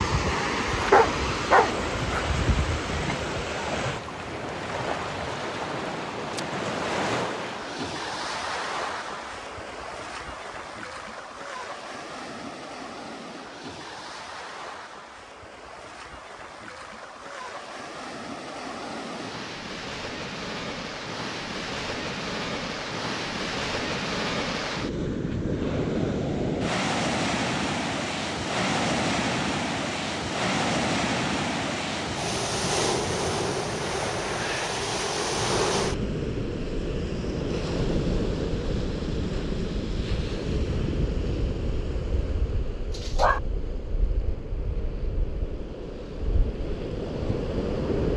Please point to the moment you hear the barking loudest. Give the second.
1 s.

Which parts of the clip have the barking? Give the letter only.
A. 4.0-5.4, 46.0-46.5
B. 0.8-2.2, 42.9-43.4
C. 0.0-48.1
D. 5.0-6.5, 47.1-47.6
B.